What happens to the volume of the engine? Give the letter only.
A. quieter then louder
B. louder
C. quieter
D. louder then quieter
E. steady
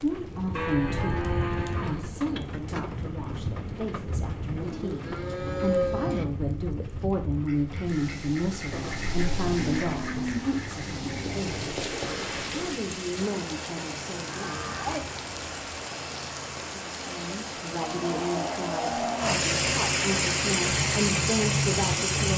B.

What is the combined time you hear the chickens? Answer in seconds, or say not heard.
5 s.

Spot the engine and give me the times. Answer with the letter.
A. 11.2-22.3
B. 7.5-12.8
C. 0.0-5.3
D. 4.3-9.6
A.